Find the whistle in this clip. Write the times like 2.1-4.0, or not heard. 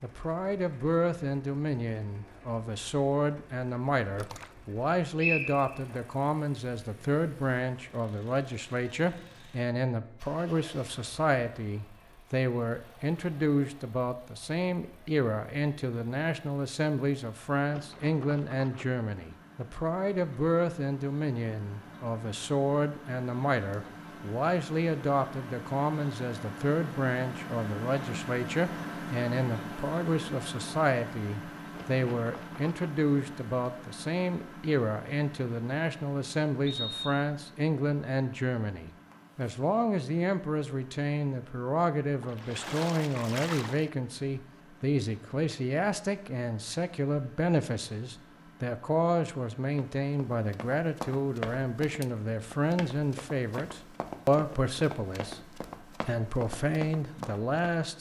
5.2-5.7, 36.6-37.2.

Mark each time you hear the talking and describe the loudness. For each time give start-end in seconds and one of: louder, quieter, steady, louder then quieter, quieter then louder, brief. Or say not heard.
0.0-57.9 steady.